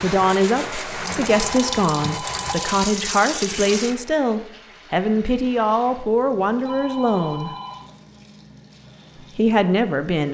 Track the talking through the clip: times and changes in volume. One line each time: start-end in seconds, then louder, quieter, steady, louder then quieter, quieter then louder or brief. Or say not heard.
0.0-7.5 steady
9.3-10.2 brief.